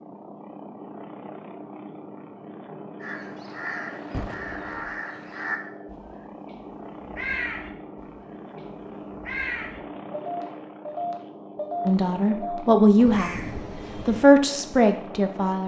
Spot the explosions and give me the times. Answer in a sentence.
The explosions can be heard from 4.1 to 5.0 s.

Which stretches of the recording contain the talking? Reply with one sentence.
You can hear the talking from 11.8 to 13.3 s and from 14.1 to 15.6 s.